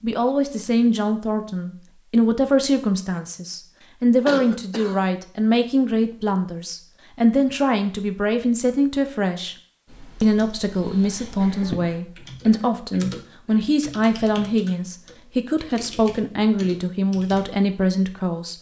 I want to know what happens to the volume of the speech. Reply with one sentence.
The loudness of the speech stays about the same.